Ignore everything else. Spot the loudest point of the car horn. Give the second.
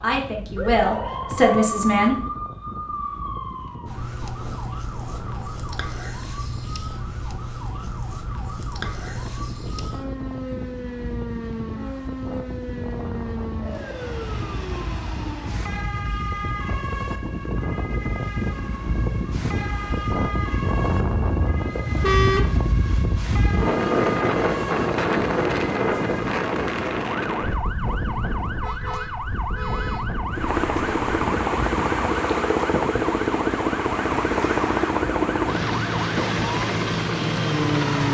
22 s.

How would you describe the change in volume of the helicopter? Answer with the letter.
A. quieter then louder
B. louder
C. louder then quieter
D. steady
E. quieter
D.